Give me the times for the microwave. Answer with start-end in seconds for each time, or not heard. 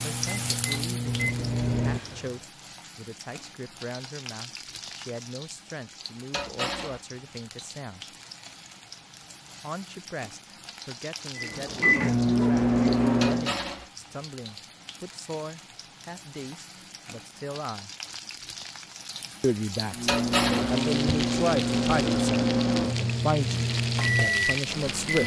0.0-2.3, 11.3-13.6, 19.9-25.2.